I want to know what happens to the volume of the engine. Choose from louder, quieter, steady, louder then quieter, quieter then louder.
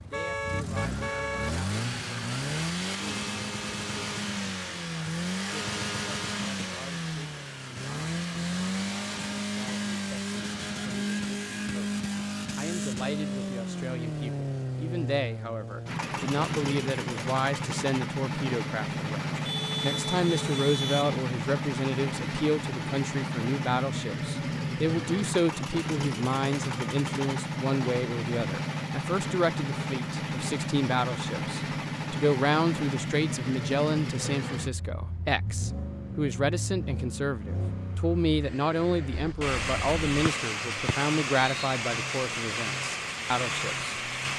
steady.